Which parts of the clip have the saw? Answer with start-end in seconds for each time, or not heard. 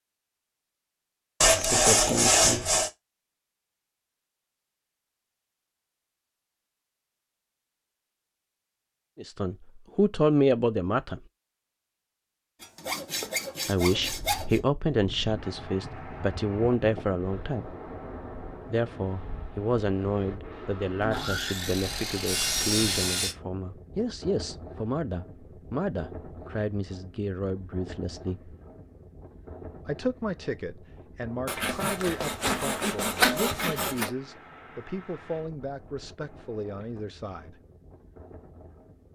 1.4-2.9, 12.6-14.6, 21.0-23.4, 31.4-34.1.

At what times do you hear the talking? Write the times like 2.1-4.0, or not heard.
9.2-11.2, 13.7-17.8, 18.6-28.6, 29.9-37.6.